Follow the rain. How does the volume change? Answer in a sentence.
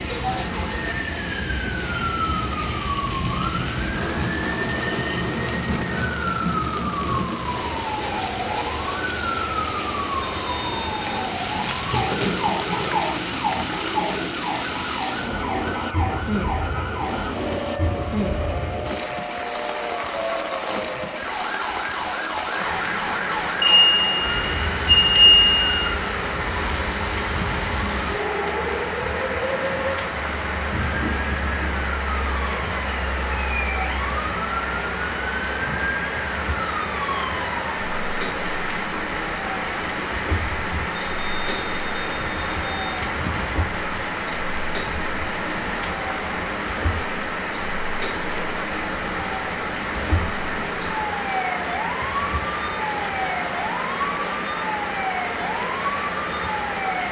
The loudness of the rain stays about the same.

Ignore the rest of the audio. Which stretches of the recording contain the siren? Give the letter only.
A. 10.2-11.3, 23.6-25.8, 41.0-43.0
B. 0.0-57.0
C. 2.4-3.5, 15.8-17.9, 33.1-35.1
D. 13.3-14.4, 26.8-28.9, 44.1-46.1
B.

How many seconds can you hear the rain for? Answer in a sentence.
You can hear the rain for 57 seconds altogether.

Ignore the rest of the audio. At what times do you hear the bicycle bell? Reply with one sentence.
The bicycle bell can be heard from 10.2 to 11.3 s, from 23.6 to 25.8 s and from 41.0 to 43.0 s.